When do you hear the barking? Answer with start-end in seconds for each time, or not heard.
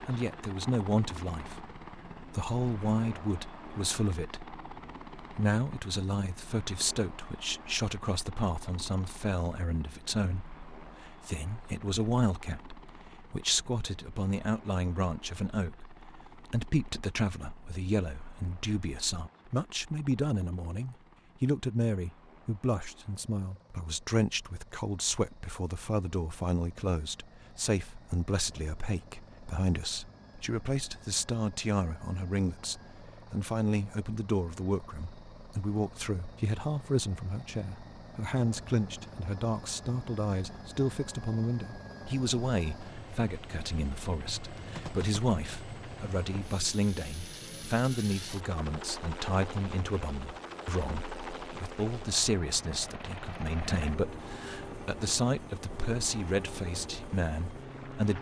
not heard.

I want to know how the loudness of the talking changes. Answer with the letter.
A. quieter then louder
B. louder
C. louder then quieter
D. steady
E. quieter
D.